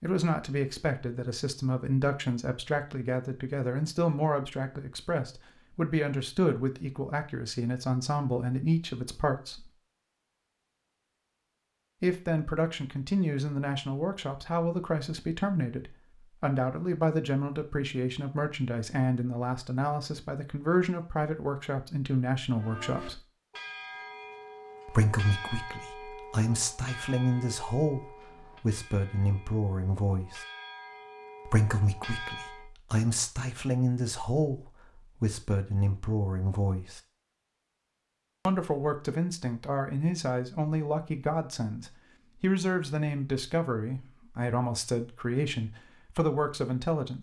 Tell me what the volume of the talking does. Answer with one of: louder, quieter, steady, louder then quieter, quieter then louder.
steady.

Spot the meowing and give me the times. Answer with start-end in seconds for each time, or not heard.
not heard.